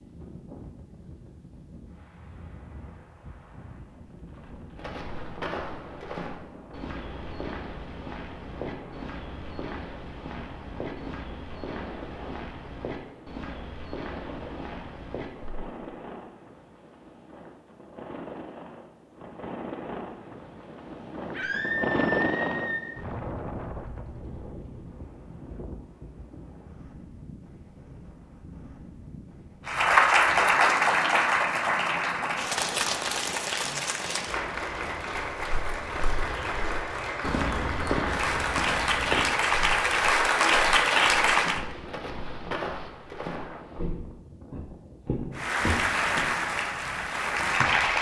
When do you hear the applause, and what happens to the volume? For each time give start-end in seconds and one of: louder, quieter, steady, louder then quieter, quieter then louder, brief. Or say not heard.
29.6-41.6 quieter then louder
45.4-47.9 brief.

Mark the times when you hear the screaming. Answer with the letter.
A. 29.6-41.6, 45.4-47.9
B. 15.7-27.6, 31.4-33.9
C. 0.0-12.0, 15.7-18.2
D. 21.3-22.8
D.